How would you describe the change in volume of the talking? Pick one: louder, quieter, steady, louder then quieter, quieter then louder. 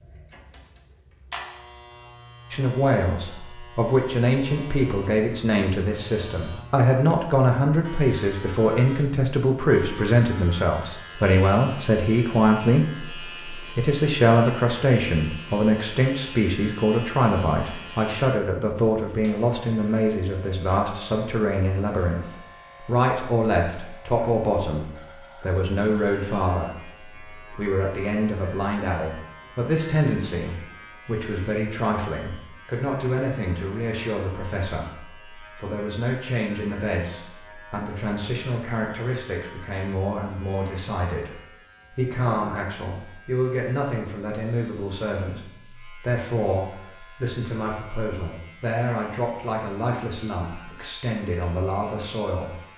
quieter.